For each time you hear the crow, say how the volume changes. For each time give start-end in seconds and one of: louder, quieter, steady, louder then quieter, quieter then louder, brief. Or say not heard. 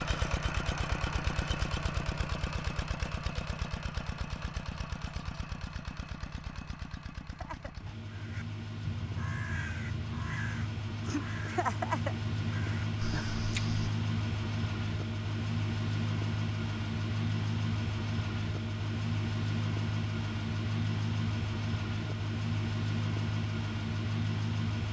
7.3-13.9 louder then quieter.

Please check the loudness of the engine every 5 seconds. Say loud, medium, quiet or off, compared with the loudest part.
loud, medium, loud, loud, loud.